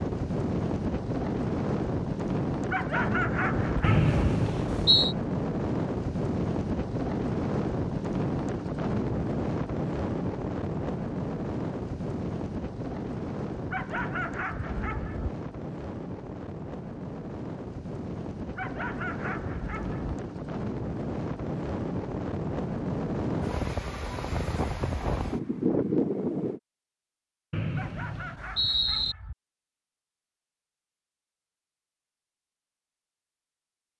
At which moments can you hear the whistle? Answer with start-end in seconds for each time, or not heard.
3.8-5.2, 27.5-29.1.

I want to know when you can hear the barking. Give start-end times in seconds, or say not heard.
2.7-4.0, 13.7-15.3, 18.6-20.1, 27.8-29.4.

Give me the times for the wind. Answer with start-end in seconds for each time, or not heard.
0.0-26.6.